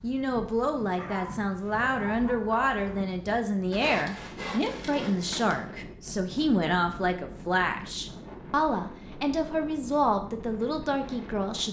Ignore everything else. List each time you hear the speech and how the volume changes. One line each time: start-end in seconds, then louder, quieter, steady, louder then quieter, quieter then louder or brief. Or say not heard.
0.0-11.6 steady.